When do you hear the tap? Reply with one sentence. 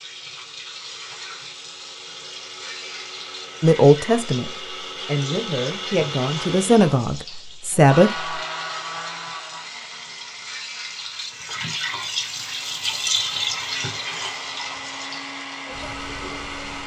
You can hear the tap from 0.0 to 16.8 s.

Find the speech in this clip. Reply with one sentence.
You can hear the speech from 3.6 to 8.3 s.